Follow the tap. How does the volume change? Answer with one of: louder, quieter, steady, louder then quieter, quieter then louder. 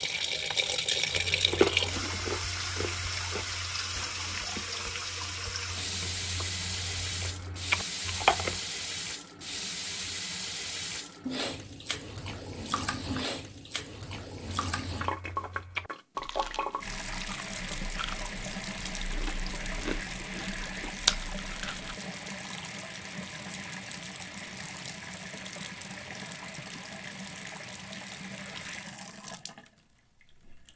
quieter.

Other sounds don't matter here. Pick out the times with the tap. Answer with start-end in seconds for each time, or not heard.
0.0-30.7.